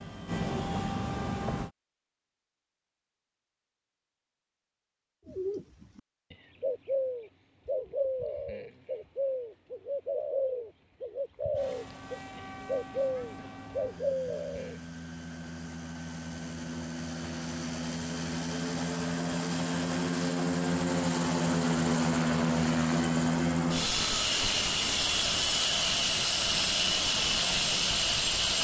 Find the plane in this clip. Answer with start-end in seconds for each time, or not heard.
0.0-1.7, 11.6-28.5.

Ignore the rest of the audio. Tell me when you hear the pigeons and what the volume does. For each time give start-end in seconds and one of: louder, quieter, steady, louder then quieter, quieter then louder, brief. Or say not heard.
5.2-14.8 steady.